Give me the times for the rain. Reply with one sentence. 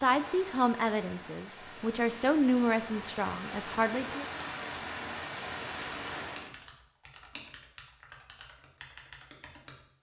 You can hear the rain from 0.0 to 6.5 s.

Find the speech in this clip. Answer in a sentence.
The speech can be heard from 0.0 to 4.2 s.